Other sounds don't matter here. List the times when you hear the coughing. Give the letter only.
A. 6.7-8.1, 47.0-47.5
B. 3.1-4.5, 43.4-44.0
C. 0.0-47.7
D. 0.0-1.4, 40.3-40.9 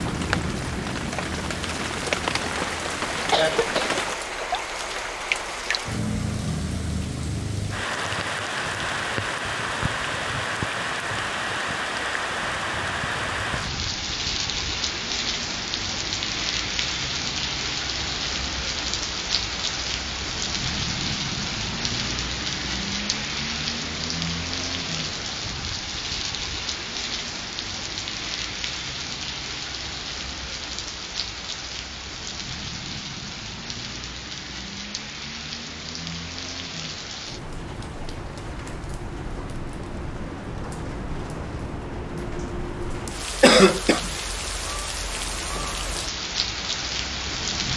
B.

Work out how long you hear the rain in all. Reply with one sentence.
The rain can be heard for 48 seconds in total.